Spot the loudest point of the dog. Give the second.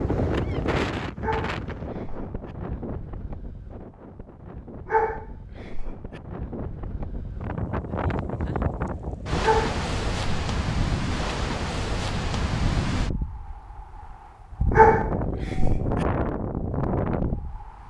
15 s.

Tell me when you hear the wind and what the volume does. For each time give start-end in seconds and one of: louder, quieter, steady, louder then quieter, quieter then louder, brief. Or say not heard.
0.0-17.8 quieter then louder.